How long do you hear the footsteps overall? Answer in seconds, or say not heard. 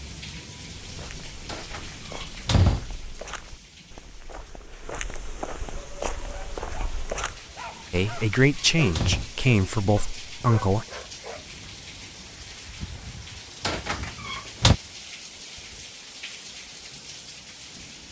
7 s.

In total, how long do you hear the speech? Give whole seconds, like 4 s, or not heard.
3 s.